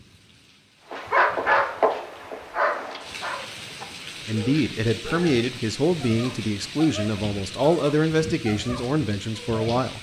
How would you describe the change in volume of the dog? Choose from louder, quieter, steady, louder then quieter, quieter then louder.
quieter.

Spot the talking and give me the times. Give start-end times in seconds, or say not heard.
4.2-9.9.